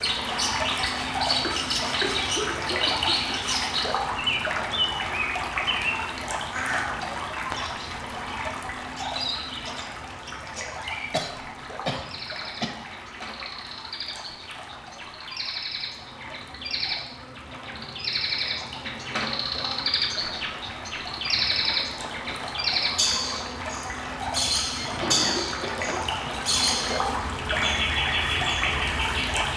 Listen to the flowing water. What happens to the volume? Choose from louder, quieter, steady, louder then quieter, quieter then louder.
quieter then louder.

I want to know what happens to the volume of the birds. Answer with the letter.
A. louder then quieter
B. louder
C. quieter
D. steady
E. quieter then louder
E.